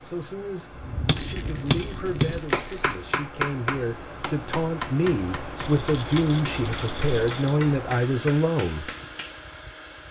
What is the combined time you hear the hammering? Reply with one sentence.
The hammering can be heard for 9 seconds in total.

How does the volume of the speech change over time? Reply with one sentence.
The volume of the speech goes up.